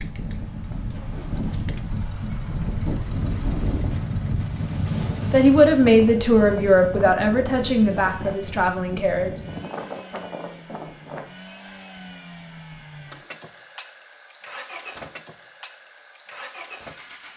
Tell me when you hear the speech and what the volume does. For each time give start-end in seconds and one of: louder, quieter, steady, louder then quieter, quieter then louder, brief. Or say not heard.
5.3-9.3 quieter.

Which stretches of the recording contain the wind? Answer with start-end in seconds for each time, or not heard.
0.0-11.2.